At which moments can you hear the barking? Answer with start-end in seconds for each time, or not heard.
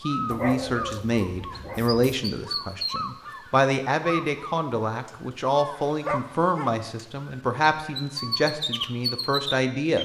0.3-2.0, 5.8-6.8.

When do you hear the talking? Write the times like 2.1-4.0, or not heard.
0.0-9.9.